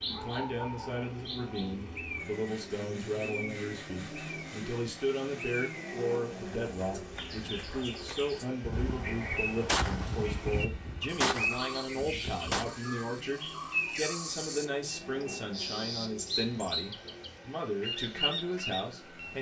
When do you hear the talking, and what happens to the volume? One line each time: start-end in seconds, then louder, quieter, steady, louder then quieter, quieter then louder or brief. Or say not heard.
0.1-19.3 steady.